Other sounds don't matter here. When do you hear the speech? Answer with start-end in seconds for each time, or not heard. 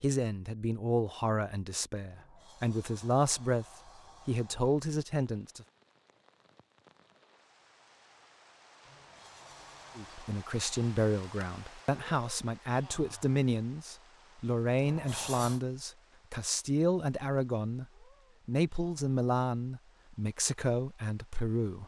0.0-3.6, 4.2-5.7, 9.9-17.9, 18.4-21.8.